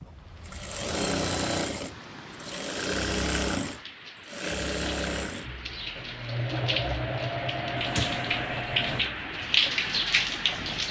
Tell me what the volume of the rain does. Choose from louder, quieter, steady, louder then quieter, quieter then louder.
louder.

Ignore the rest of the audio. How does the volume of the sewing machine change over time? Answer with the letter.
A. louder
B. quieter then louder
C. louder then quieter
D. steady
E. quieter
E.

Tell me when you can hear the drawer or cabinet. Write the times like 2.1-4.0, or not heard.
7.8-9.1.